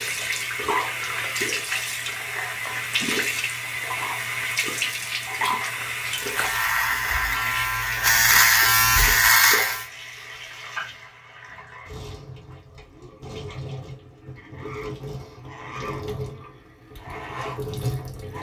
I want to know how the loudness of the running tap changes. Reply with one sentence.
The loudness of the running tap goes down, then up.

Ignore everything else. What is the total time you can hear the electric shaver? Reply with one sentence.
You can hear the electric shaver for 4 seconds altogether.